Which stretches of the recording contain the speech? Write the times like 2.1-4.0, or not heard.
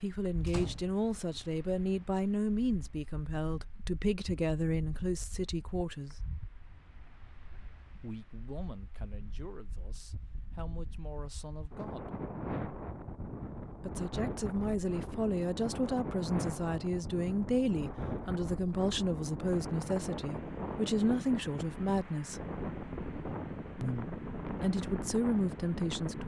0.0-6.2, 8.0-12.1, 13.8-22.4, 23.8-26.2.